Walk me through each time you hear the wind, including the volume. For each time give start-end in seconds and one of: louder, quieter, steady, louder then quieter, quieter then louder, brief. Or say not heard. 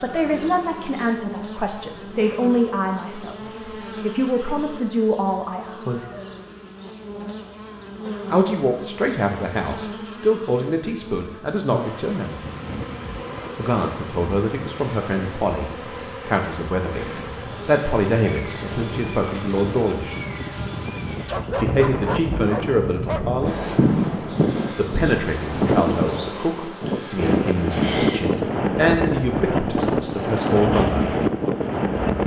12.4-32.2 louder.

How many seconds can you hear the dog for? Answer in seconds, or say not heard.
2 s.